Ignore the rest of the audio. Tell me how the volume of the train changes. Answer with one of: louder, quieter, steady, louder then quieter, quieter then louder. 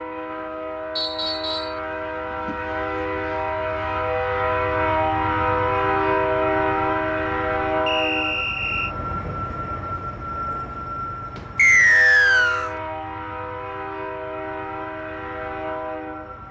louder then quieter.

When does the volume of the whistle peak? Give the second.
12 s.